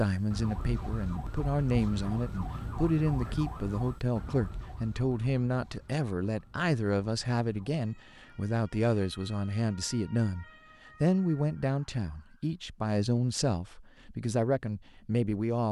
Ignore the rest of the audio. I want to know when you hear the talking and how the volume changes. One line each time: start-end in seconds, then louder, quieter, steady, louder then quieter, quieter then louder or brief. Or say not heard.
0.0-15.6 steady.